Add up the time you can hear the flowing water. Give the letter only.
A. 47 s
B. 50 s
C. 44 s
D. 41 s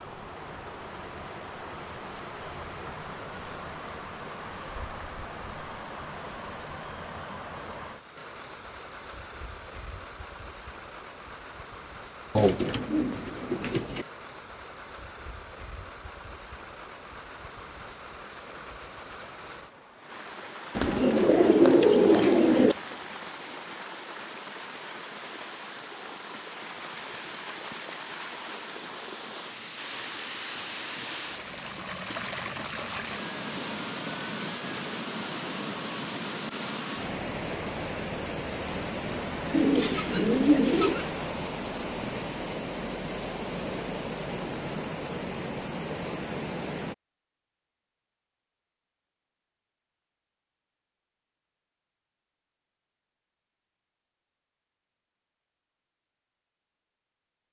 A.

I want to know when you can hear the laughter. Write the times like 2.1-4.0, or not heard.
not heard.